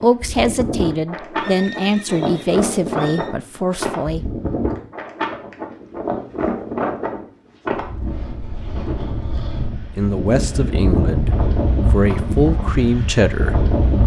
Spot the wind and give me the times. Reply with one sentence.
You can hear the wind from 0.0 to 14.0 s.